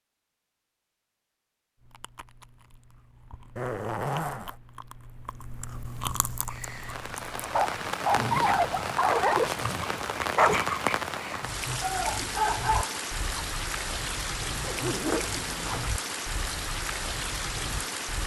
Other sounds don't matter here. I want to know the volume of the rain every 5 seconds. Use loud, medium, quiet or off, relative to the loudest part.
off, loud, loud, loud.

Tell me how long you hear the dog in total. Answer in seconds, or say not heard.
7 s.